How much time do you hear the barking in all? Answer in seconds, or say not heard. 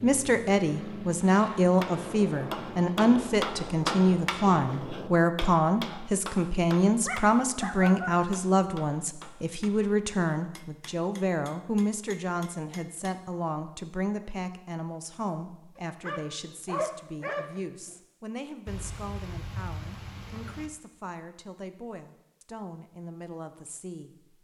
3 s.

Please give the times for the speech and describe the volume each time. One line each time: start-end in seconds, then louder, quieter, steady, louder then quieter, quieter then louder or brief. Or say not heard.
0.0-24.4 quieter.